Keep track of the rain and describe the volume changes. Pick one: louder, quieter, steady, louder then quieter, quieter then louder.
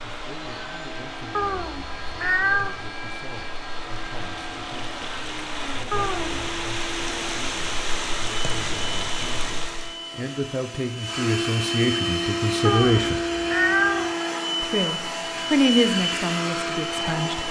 louder.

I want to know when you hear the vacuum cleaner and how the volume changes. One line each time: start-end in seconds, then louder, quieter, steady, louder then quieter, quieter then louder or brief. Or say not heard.
0.0-17.4 louder.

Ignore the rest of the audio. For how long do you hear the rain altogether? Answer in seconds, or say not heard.
10 s.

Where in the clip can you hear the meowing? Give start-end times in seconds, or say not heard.
1.3-2.8, 5.9-6.4, 12.7-14.2.